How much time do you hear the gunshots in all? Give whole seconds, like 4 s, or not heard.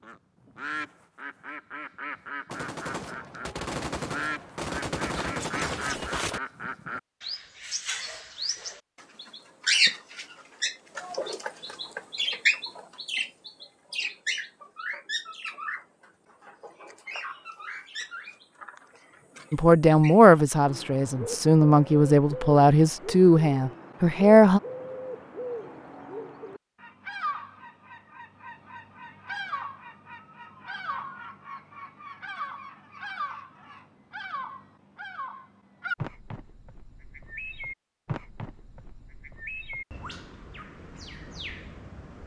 4 s.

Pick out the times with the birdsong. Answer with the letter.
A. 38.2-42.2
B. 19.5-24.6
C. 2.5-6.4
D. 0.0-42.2
D.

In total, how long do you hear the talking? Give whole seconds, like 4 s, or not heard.
5 s.